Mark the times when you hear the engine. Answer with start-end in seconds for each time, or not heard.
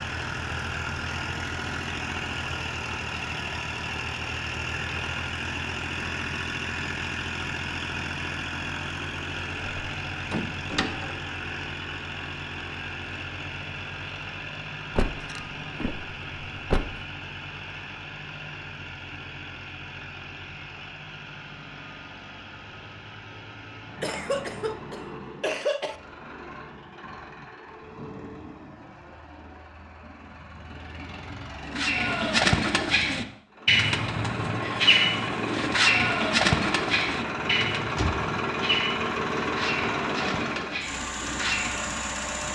0.0-42.4.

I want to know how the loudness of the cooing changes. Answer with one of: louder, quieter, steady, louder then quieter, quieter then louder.
quieter.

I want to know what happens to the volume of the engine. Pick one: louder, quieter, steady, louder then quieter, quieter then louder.
quieter then louder.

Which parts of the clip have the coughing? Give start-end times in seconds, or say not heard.
24.0-25.9.